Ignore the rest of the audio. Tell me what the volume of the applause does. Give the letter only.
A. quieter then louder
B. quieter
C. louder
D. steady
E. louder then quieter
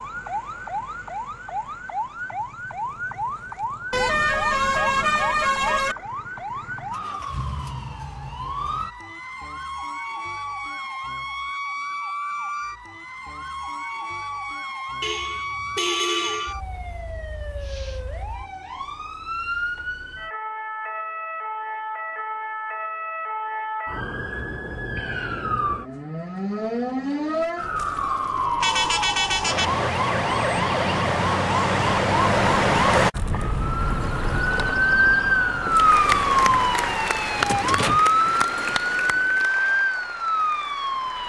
B.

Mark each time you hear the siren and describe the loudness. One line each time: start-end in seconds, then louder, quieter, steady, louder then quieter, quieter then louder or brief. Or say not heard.
0.0-41.2 louder.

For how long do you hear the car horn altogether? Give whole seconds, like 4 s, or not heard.
5 s.